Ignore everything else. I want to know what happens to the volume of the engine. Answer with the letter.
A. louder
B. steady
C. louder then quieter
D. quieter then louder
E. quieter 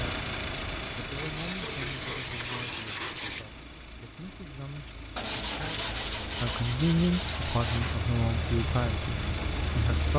D.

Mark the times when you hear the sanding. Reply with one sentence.
The sanding can be heard from 1.1 to 3.5 s and from 5.2 to 8.1 s.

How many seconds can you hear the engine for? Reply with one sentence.
You can hear the engine for 10 seconds altogether.